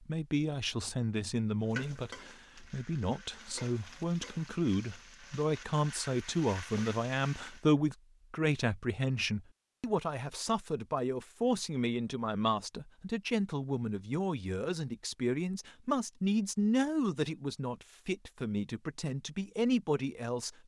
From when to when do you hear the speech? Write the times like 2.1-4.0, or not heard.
0.0-20.6.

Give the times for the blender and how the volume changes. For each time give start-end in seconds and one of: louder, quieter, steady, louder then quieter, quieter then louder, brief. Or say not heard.
not heard.